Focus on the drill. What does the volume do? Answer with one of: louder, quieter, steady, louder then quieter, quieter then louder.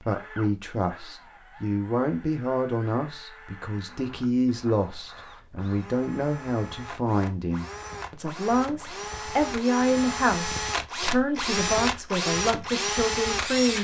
louder.